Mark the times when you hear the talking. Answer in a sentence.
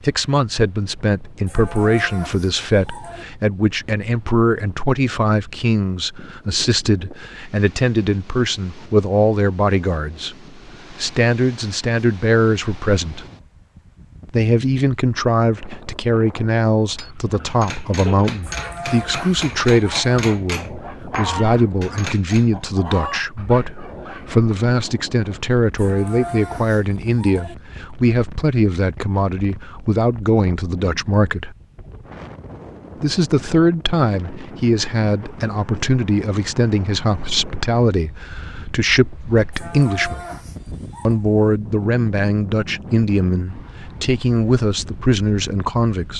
The talking can be heard from 0.0 to 13.2 s, from 14.2 to 31.6 s, from 33.0 to 40.2 s and from 41.0 to 46.1 s.